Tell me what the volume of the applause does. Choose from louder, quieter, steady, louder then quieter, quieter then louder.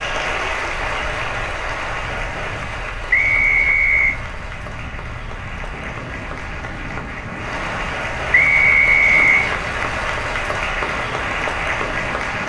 quieter then louder.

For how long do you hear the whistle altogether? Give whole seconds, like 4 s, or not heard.
2 s.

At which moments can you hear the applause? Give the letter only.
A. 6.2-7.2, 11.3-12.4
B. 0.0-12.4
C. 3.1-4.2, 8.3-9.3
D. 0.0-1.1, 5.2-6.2
B.